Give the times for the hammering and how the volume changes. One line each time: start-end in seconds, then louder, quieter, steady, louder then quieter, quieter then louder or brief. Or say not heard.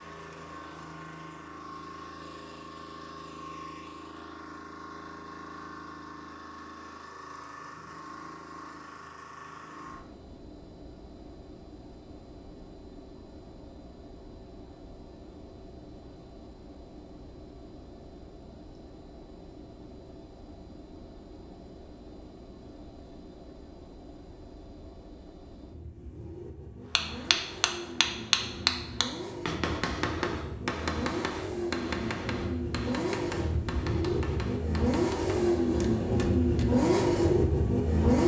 26.9-36.7 quieter.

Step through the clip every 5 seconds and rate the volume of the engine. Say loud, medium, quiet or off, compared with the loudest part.
quiet, quiet, quiet, quiet, quiet, quiet, medium, loud.